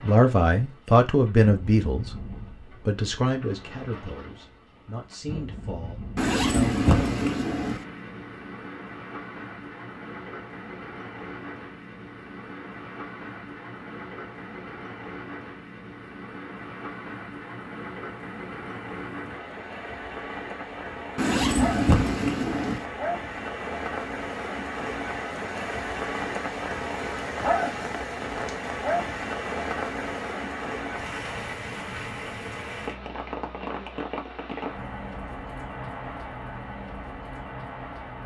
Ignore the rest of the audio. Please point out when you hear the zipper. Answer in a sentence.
You can hear the zipper from 6.2 to 7.8 s and from 21.1 to 22.9 s.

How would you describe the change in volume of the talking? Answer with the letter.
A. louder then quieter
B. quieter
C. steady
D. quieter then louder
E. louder
B.